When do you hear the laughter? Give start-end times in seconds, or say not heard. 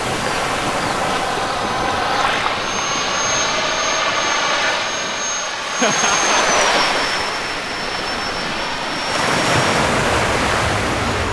5.8-6.5.